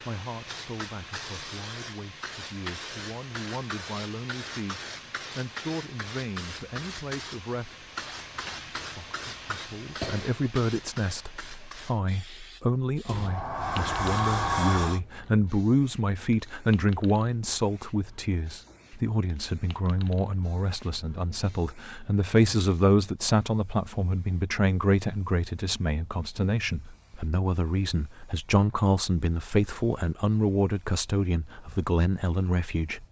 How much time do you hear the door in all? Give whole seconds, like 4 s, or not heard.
2 s.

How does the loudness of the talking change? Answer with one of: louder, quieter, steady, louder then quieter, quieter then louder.
louder.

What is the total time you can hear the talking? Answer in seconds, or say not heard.
32 s.